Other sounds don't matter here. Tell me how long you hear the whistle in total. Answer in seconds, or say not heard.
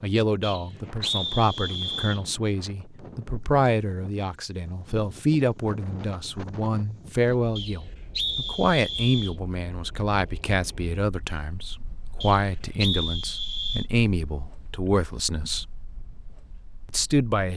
5 s.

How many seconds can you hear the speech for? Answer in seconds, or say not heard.
16 s.